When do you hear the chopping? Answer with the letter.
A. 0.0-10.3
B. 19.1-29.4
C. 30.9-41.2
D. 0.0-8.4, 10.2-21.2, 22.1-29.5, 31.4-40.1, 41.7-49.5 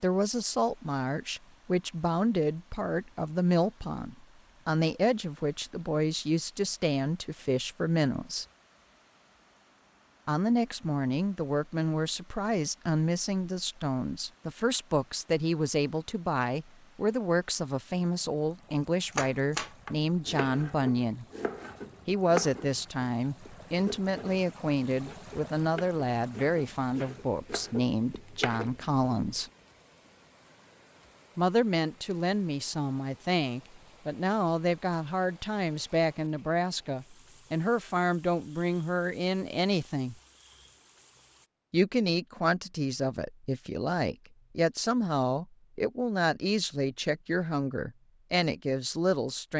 B.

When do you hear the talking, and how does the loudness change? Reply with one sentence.
You can hear the talking from 0.0 to 8.4 s, at a steady volume; from 10.2 to 21.2 s, at a steady volume; from 22.1 to 29.5 s, at a steady volume; from 31.4 to 40.1 s, at a steady volume; and from 41.7 to 49.5 s, at a steady volume.